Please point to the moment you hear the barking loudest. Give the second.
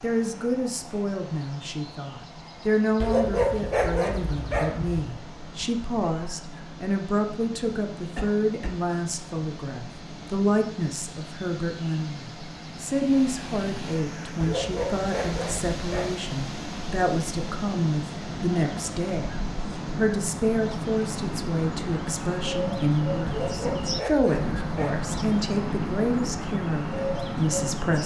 3 s.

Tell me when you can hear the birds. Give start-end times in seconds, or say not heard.
0.0-28.0.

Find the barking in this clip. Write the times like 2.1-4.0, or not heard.
3.0-5.0, 14.4-16.1, 23.2-25.1.